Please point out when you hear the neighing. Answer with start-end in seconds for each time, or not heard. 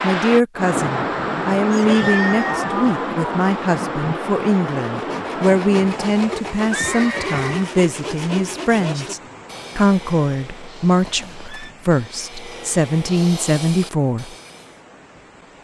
1.7-2.7, 5.9-7.7, 11.1-11.8.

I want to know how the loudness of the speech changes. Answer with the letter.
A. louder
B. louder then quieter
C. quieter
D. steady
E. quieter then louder
D.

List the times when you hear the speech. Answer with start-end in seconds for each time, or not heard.
0.0-14.3.